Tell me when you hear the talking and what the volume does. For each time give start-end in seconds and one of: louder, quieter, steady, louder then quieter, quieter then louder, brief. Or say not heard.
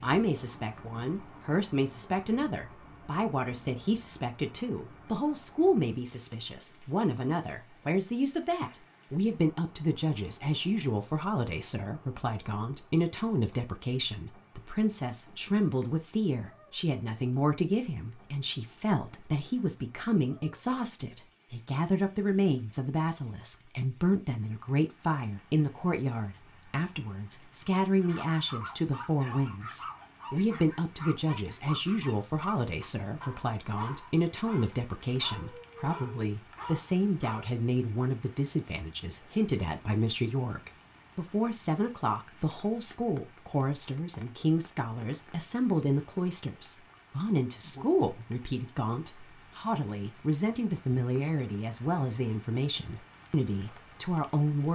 0.0-54.6 steady.